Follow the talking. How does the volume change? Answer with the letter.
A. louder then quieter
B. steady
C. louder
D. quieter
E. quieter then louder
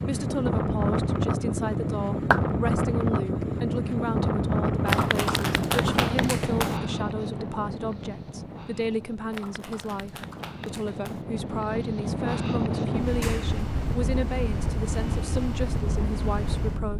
B.